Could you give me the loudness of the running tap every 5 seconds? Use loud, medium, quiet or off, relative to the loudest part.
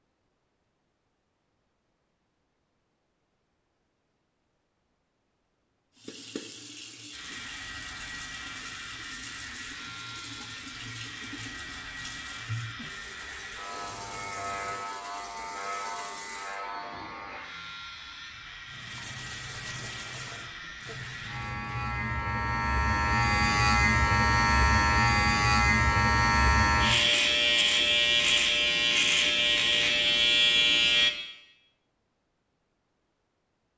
off, loud, loud, loud, loud, off, off.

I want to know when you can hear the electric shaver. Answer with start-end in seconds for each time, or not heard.
7.1-31.1.